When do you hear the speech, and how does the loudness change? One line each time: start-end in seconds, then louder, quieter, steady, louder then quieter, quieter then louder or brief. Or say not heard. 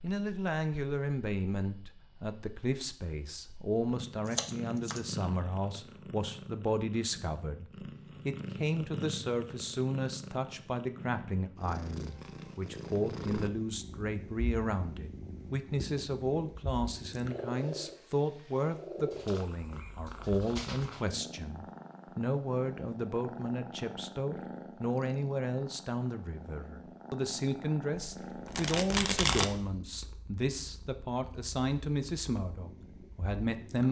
0.0-33.8 steady.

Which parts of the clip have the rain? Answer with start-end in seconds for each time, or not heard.
not heard.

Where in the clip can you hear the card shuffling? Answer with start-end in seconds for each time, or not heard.
4.2-5.0, 28.2-29.4.